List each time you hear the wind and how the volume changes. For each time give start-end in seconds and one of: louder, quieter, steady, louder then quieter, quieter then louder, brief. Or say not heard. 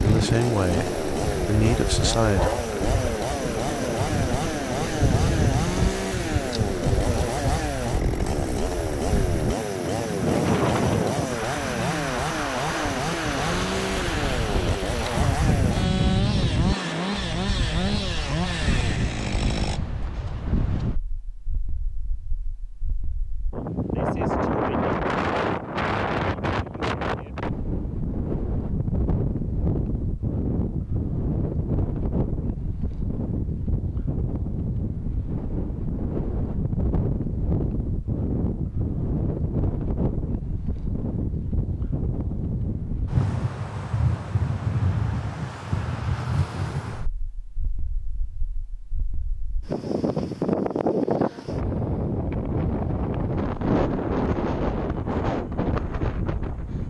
0.0-56.8 steady.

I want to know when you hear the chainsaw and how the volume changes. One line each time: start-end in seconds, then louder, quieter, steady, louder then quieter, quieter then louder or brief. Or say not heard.
0.0-19.8 steady.